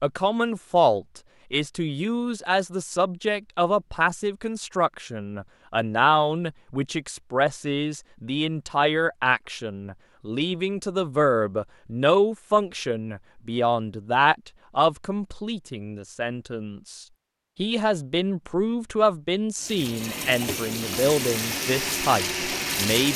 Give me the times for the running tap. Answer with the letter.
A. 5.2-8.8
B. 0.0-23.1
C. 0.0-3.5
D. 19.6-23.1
D.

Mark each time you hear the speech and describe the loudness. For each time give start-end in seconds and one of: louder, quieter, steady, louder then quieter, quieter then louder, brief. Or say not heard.
0.0-23.1 steady.